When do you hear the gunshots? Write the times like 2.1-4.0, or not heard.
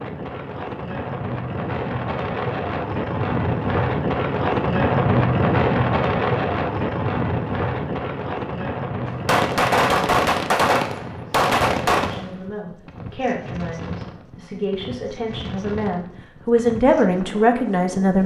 9.1-12.3.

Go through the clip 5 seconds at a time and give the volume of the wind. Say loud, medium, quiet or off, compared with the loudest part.
loud, loud, quiet, quiet.